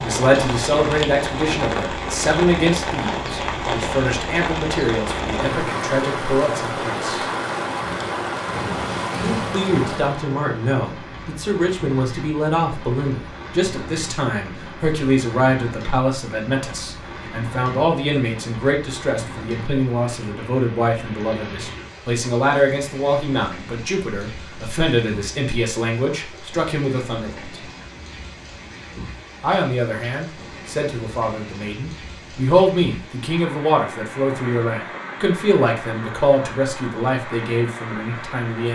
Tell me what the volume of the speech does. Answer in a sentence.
The volume of the speech stays about the same.